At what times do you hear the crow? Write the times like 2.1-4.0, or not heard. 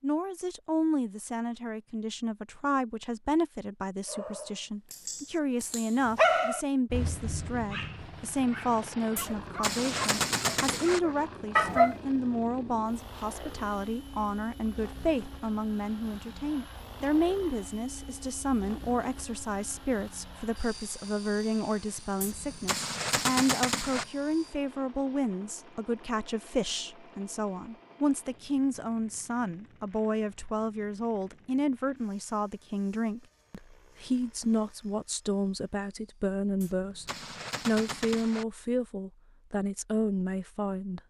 not heard.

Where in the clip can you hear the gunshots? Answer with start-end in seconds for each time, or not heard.
9.2-11.0, 22.2-24.1, 36.6-38.5.